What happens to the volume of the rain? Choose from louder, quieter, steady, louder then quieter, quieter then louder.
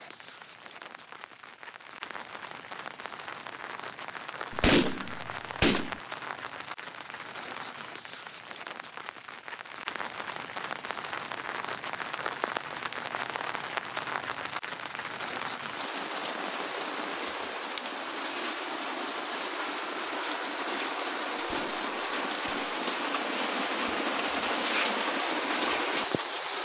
louder.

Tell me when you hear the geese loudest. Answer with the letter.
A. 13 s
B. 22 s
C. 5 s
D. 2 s
C.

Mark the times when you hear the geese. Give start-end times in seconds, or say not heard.
4.5-6.0, 21.4-22.8.